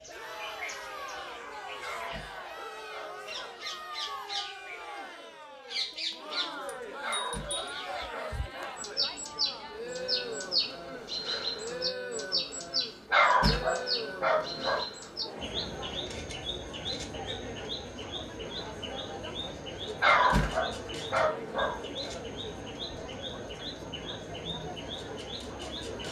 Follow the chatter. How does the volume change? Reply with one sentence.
The volume of the chatter stays about the same.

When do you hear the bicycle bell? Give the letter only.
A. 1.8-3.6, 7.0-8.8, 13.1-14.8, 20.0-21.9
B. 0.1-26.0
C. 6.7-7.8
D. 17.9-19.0
C.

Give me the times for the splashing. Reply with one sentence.
You can't hear the splashing here.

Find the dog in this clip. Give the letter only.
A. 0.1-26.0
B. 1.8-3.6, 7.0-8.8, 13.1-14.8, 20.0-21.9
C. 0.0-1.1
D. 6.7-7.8
B.